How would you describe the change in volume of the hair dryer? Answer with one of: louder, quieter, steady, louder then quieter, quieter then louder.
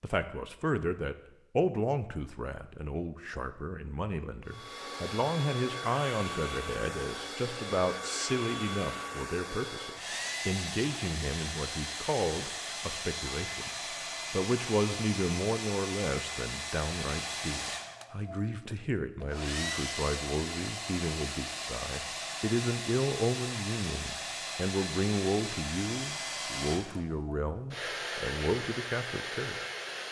steady.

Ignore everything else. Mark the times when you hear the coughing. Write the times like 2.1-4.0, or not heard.
not heard.